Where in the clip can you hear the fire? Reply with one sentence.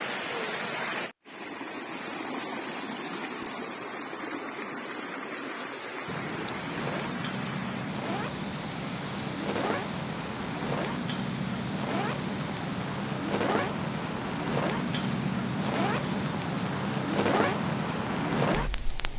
You can hear the fire from 6.0 to 19.1 s.